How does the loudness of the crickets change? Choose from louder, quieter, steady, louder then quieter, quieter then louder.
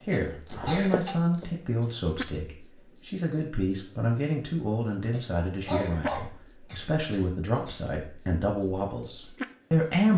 steady.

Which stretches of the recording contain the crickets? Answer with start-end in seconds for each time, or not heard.
0.0-10.1.